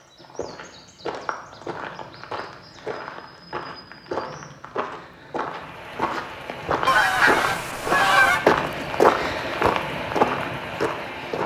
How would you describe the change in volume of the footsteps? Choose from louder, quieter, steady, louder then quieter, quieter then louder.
louder.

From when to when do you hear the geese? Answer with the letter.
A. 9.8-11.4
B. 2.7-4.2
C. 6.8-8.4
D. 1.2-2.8
C.